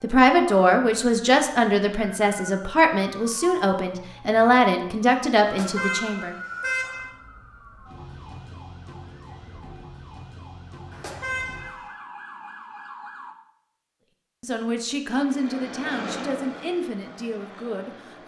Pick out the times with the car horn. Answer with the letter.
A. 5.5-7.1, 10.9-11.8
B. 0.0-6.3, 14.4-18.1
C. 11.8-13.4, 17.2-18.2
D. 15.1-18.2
A.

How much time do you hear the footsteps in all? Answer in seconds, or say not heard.
not heard.